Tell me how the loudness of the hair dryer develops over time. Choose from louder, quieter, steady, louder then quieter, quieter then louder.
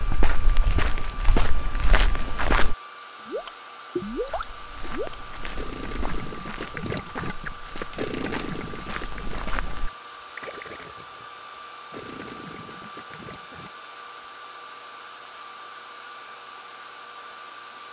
steady.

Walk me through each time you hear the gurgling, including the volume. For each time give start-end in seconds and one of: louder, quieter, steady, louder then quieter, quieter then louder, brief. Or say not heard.
3.1-13.7 quieter.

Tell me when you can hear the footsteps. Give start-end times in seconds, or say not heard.
0.0-2.8, 4.2-9.9.